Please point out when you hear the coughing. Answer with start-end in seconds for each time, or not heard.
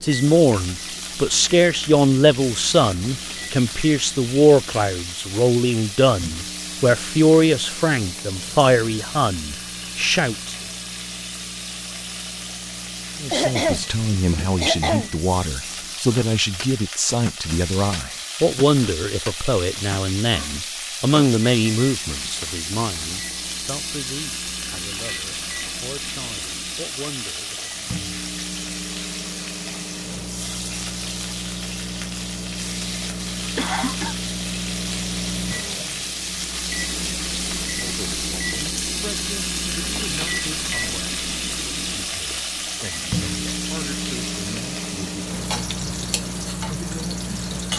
13.3-15.1, 33.5-34.1.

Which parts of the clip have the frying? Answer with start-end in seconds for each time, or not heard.
0.0-47.7.